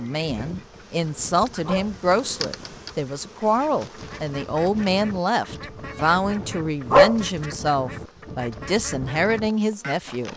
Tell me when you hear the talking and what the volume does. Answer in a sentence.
The talking can be heard from 0.0 to 10.3 s, at a steady volume.